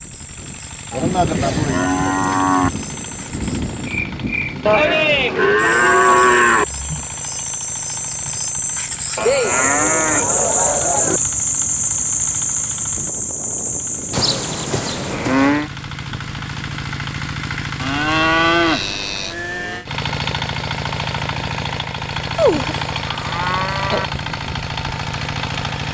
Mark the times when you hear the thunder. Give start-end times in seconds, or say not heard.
1.0-5.3.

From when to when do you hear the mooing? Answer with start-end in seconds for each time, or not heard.
0.9-2.7, 4.7-6.7, 9.2-11.2, 14.1-15.7, 17.8-19.9, 22.4-24.1.